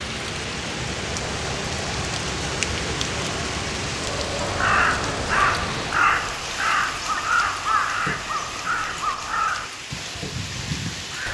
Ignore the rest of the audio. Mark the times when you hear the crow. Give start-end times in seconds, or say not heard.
4.4-11.2.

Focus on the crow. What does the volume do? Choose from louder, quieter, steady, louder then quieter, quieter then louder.
quieter.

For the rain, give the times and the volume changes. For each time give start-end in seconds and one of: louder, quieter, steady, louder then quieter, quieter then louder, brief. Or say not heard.
0.0-11.2 quieter.